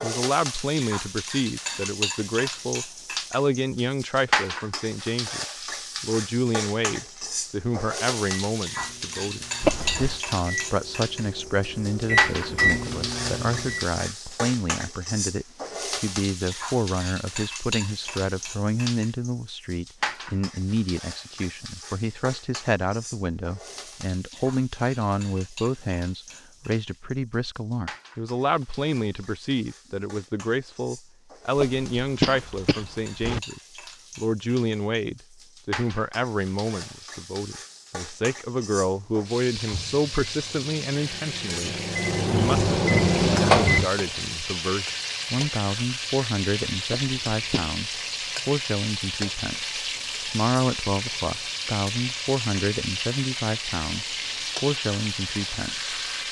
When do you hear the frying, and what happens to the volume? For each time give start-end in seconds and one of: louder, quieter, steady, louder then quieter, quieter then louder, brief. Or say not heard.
0.0-56.2 quieter then louder.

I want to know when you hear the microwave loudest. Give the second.
43 s.